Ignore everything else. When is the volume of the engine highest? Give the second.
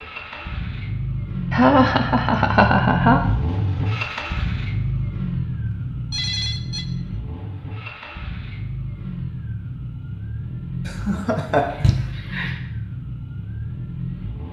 3 s.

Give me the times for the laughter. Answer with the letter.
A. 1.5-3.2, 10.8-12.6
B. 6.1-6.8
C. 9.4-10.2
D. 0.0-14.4
A.